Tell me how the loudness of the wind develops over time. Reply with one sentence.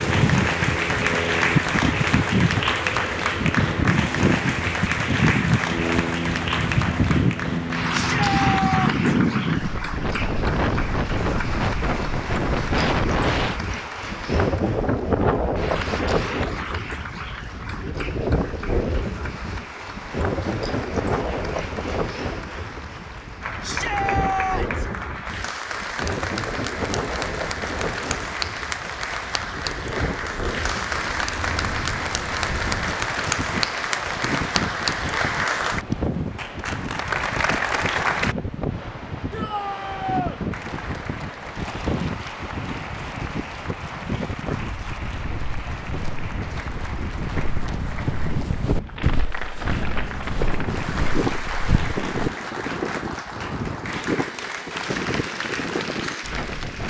The volume of the wind goes down.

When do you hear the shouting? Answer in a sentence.
The shouting can be heard from 7.9 to 9.1 s, from 23.6 to 24.9 s and from 39.3 to 40.4 s.